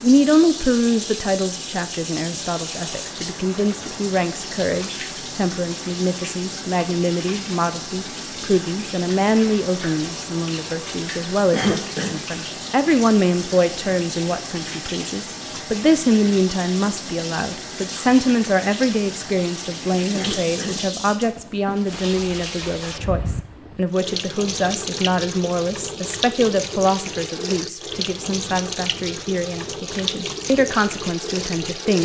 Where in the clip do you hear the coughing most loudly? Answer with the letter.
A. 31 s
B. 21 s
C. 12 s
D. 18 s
C.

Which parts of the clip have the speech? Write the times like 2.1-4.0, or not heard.
0.0-32.0.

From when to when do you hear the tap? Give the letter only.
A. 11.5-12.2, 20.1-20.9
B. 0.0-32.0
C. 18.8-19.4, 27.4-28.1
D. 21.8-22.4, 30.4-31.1
B.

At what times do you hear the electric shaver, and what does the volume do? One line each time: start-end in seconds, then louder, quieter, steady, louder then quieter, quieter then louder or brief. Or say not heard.
not heard.